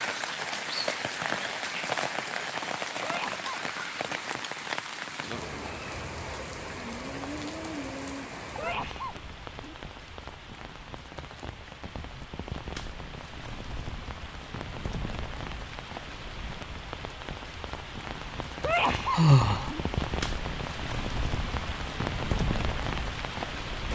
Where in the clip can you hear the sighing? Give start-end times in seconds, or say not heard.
19.0-19.7.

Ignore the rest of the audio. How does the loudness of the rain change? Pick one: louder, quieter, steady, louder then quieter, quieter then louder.
quieter then louder.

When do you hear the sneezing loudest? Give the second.
19 s.